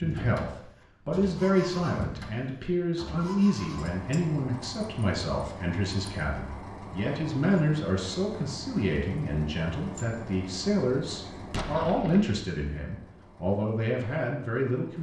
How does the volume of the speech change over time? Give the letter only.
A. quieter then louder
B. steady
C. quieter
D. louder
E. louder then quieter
B.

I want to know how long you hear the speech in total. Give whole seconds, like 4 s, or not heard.
15 s.